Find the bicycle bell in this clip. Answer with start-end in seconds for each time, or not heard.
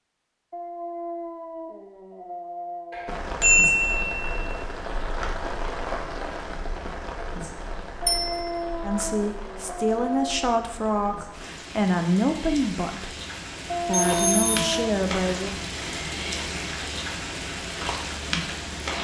2.9-4.2, 8.1-8.5, 13.9-14.6.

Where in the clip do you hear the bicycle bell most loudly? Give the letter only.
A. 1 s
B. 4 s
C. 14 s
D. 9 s
B.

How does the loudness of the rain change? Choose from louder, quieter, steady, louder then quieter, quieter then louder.
quieter then louder.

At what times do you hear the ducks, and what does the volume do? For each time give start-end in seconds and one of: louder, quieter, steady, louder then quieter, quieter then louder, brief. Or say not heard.
not heard.